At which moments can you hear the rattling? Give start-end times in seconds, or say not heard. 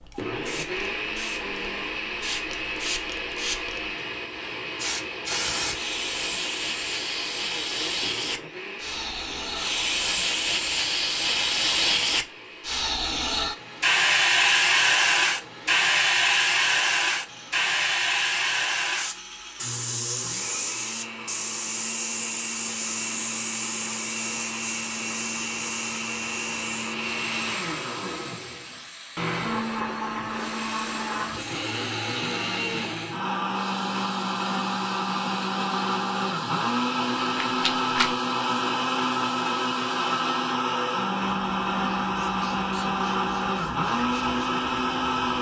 37.1-38.1.